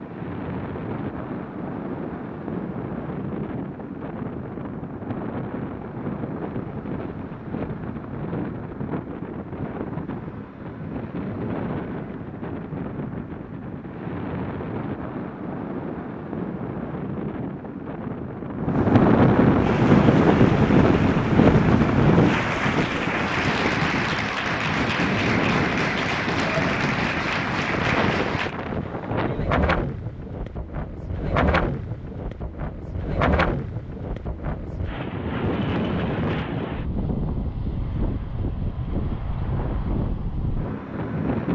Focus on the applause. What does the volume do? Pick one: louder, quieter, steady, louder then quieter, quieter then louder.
louder.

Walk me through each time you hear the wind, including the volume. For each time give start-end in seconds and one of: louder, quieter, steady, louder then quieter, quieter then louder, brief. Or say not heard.
0.0-41.5 louder then quieter.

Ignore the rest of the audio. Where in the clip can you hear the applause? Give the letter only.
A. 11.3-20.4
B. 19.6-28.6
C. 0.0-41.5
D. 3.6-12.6
B.